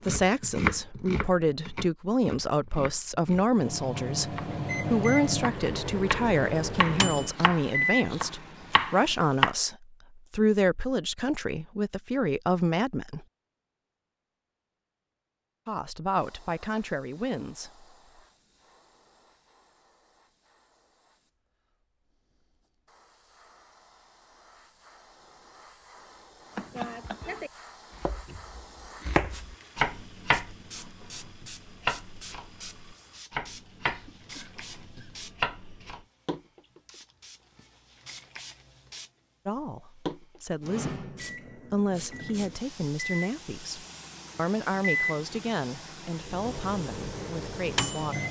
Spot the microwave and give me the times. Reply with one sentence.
The microwave can be heard from 3.5 to 9.2 s and from 40.6 to 48.2 s.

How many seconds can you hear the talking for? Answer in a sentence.
You can hear the talking for 24 seconds altogether.